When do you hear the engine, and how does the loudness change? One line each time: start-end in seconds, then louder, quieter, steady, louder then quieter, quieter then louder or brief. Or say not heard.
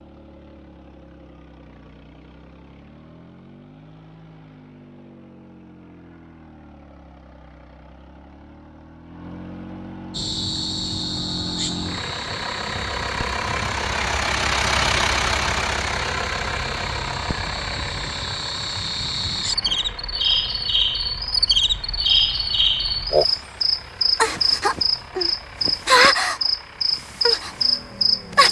0.0-28.4 louder then quieter.